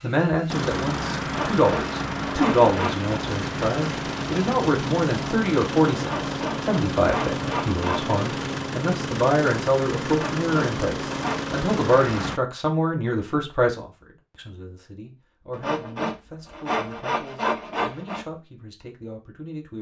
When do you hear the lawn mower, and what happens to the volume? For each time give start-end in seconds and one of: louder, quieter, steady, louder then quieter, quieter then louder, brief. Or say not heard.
0.0-12.4 steady.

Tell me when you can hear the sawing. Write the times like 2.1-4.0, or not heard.
1.2-3.1, 6.0-8.2, 10.1-11.6, 15.5-18.2.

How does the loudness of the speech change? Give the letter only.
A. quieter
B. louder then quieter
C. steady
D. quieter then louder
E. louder
A.